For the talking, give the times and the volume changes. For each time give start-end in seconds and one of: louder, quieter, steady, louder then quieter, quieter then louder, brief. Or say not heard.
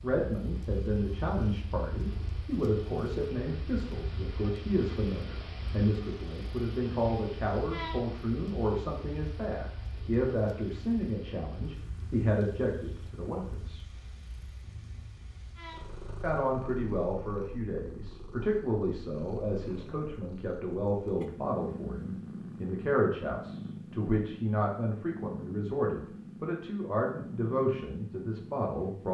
0.0-13.9 steady
16.2-29.0 steady.